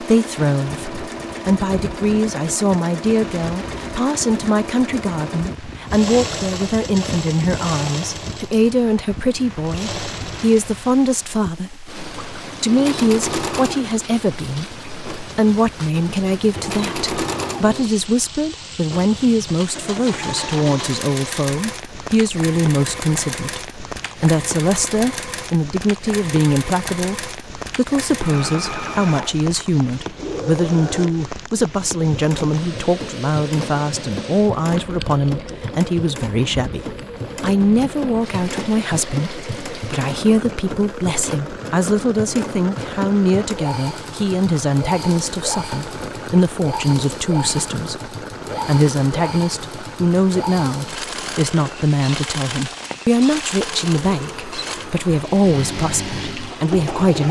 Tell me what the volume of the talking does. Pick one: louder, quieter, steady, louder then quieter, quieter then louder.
steady.